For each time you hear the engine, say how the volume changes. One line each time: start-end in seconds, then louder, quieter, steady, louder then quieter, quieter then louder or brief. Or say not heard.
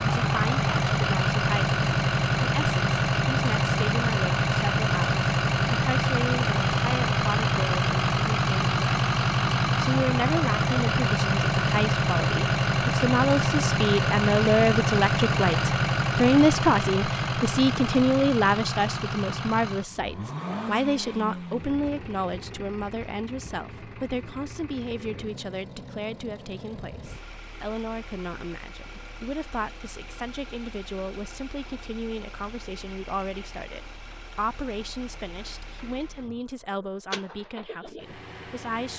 0.0-38.9 quieter.